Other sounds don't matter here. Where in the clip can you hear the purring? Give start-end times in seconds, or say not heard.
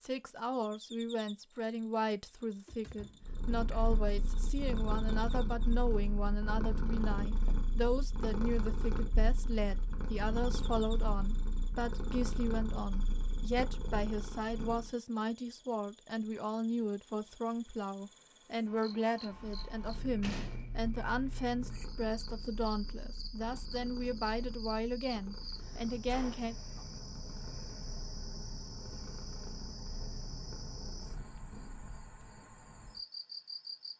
3.2-14.9, 19.4-31.9.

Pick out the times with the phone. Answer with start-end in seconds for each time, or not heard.
not heard.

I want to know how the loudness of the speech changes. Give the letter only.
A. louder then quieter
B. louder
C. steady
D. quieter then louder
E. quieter
C.